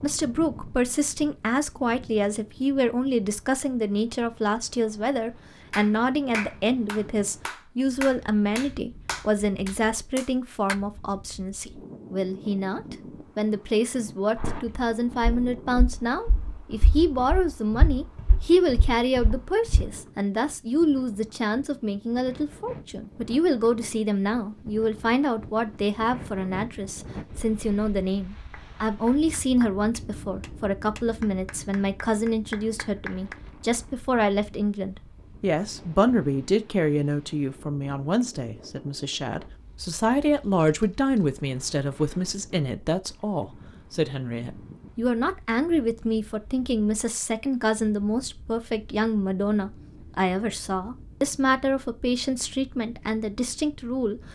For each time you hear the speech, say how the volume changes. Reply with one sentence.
You can hear the speech from 0.0 to 54.2 s, at a steady volume.